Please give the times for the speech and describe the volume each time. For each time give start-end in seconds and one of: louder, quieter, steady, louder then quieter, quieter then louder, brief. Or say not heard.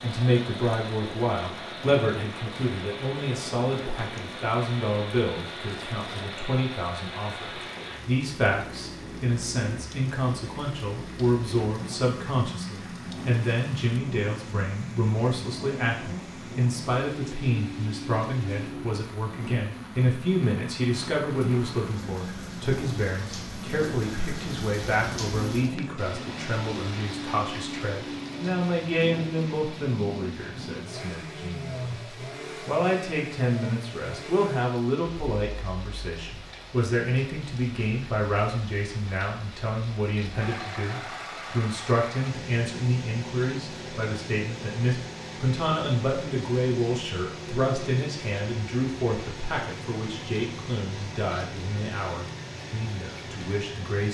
0.0-54.0 steady.